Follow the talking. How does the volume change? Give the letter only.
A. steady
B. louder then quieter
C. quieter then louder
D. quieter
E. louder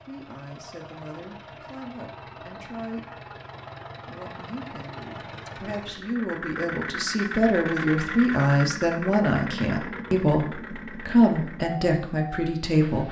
E.